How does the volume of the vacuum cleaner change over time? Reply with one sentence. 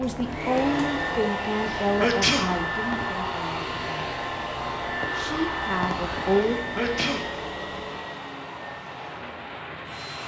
The volume of the vacuum cleaner goes down.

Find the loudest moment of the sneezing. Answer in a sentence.
The loudest moment of the sneezing is at 2 seconds.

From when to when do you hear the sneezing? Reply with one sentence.
The sneezing can be heard from 1.7 to 2.5 s and from 6.5 to 7.2 s.